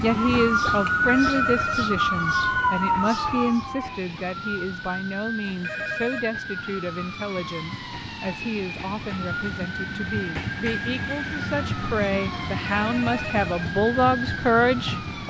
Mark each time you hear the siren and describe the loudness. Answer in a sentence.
You can hear the siren from 0.0 to 15.2 s, getting quieter.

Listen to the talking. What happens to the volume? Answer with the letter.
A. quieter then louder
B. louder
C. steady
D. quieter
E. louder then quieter
A.